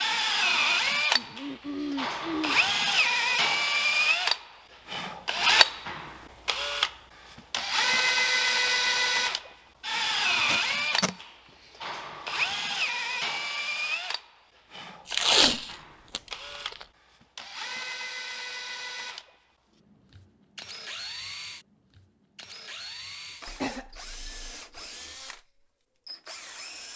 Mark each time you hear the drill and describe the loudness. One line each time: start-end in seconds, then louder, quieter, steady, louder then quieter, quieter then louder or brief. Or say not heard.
0.0-26.9 quieter.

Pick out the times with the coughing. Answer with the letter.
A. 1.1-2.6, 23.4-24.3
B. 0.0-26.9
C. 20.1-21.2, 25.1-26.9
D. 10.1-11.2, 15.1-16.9
A.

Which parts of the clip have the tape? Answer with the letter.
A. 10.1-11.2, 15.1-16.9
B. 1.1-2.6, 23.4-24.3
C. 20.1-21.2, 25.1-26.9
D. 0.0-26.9
A.